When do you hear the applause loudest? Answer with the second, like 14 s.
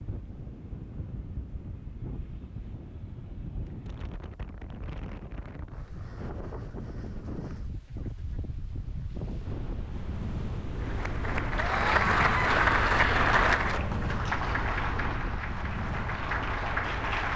13 s.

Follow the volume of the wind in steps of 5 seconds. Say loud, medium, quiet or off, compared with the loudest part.
medium, medium, loud, loud.